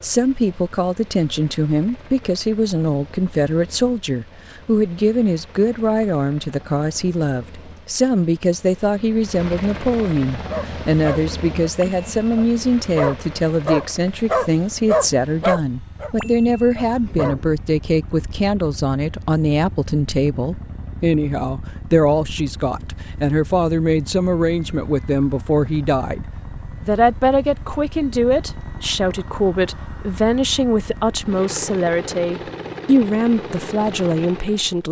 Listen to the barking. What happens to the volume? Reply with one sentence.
The volume of the barking goes up, then down.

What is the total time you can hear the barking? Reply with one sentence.
You can hear the barking for 7 seconds altogether.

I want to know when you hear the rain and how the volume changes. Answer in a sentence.
The rain can't be heard in this clip.